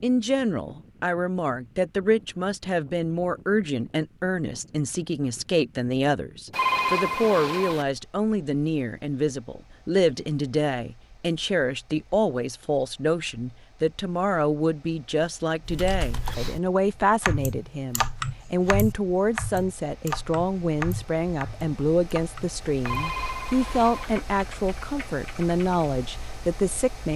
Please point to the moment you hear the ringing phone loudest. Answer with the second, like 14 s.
7 s.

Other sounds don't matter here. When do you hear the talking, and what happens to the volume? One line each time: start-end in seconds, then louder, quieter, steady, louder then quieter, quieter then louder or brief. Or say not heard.
0.0-27.1 steady.